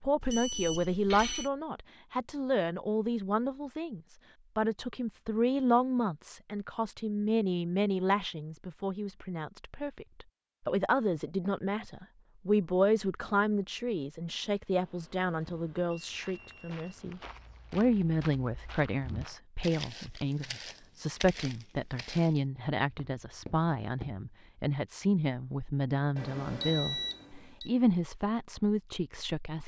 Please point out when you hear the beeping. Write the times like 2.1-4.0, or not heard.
0.2-1.5, 14.8-17.4, 26.1-27.7.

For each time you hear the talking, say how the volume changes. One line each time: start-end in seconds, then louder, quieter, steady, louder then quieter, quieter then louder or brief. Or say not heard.
0.0-29.6 steady.